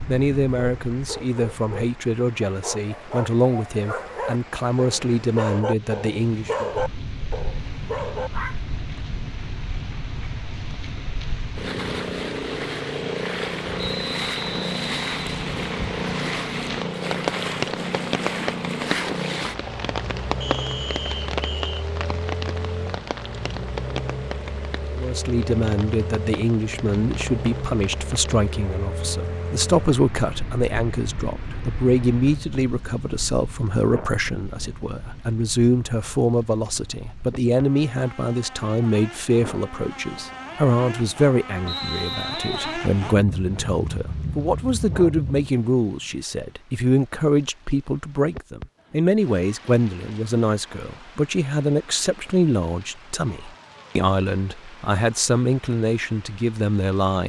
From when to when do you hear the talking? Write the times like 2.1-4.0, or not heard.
0.1-6.7, 24.9-57.2.